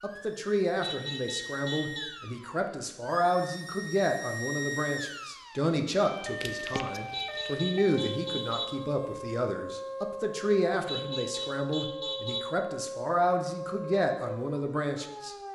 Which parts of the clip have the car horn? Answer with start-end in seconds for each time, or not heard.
0.8-2.1, 7.1-8.7, 10.8-12.4.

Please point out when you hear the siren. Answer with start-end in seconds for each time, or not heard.
0.0-15.4.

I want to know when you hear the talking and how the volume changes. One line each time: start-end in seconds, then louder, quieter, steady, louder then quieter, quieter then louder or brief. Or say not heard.
0.0-15.3 steady.